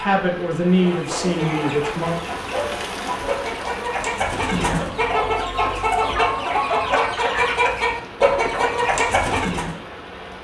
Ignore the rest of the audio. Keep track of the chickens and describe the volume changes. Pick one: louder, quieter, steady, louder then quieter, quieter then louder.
louder.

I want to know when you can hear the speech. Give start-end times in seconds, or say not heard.
0.0-2.1.